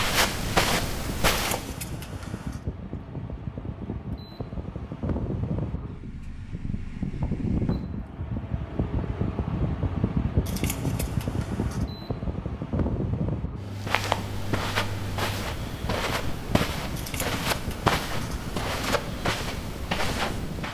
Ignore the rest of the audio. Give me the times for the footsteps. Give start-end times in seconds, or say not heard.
0.0-1.8, 13.7-20.6.